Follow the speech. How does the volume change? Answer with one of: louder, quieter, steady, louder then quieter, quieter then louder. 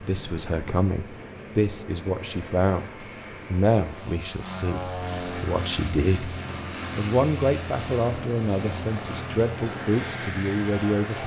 steady.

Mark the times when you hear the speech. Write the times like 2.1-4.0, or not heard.
0.0-6.3, 7.0-11.2.